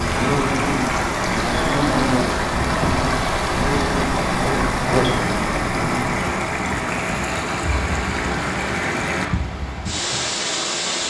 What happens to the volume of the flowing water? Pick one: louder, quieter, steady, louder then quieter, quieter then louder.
steady.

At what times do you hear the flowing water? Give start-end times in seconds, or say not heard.
0.0-11.0.